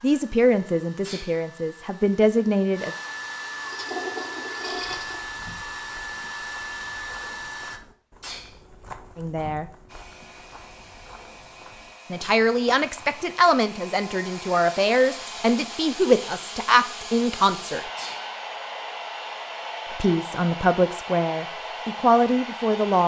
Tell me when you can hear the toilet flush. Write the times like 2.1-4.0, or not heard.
3.5-5.2.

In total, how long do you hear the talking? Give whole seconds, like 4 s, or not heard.
12 s.